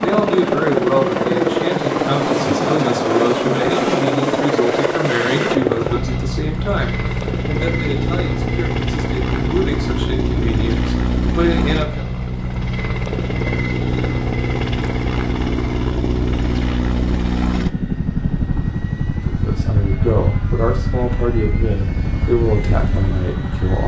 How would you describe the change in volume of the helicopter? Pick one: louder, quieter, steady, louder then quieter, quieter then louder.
quieter.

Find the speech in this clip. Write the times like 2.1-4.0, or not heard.
0.0-12.1, 19.2-23.8.